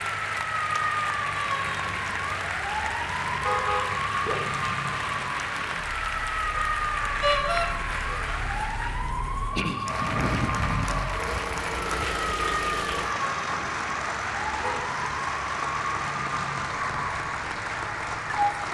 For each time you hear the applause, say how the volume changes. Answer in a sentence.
You can hear the applause from 0.0 to 18.6 s, at a steady volume.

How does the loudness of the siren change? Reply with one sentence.
The loudness of the siren stays about the same.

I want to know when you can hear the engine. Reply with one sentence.
You can hear the engine from 0.0 to 18.6 s.